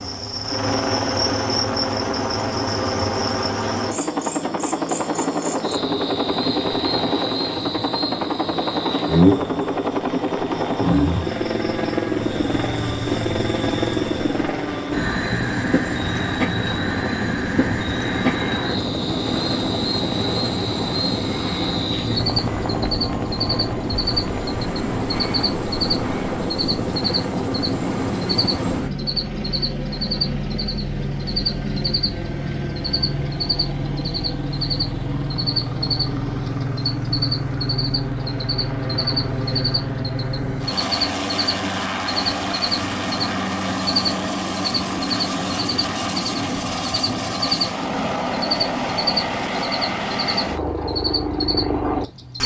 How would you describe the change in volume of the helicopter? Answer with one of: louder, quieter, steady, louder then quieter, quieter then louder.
steady.